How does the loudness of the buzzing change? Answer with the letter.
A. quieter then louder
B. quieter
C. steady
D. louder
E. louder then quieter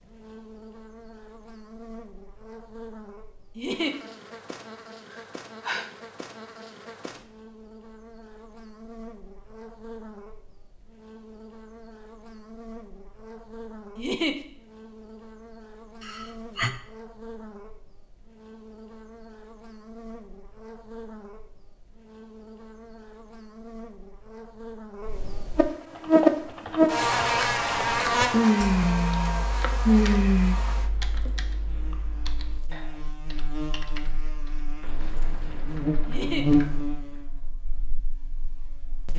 E.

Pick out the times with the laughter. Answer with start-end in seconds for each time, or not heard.
3.5-4.0, 13.9-14.3, 36.0-36.5.